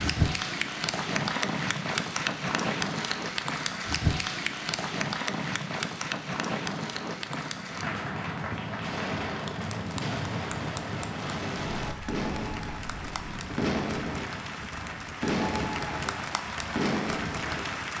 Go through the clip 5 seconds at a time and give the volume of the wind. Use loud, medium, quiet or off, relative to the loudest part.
loud, loud, medium, medium.